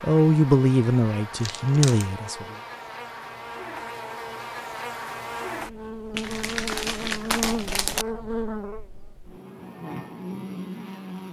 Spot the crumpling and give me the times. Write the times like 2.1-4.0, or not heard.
1.4-2.0, 6.1-8.1.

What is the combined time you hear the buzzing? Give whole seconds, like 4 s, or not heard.
11 s.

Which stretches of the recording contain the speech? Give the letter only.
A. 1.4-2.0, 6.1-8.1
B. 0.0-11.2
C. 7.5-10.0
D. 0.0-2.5
D.